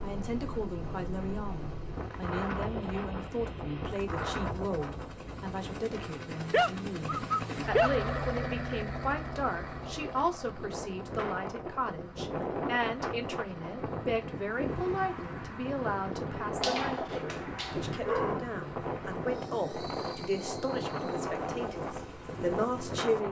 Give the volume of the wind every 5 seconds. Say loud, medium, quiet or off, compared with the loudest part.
loud, medium, loud, loud, loud.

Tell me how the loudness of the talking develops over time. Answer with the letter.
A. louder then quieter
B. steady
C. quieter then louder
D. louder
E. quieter
B.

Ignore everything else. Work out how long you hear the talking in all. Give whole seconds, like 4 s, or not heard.
23 s.